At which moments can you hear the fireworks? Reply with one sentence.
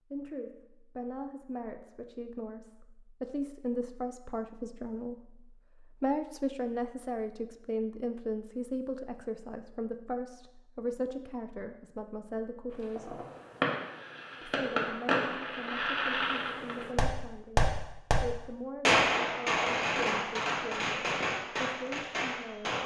You can hear the fireworks from 12.7 to 22.8 s.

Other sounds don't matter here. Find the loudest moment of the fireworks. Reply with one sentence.
The loudest moment of the fireworks is at 19 seconds.